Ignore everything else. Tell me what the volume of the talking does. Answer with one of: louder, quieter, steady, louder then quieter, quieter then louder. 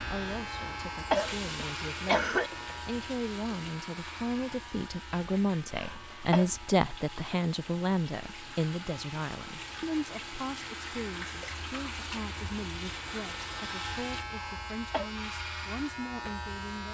louder then quieter.